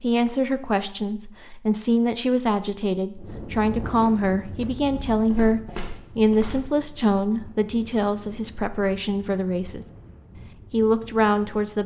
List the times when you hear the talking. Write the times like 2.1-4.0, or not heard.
0.0-9.8, 10.7-11.8.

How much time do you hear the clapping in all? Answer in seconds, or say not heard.
not heard.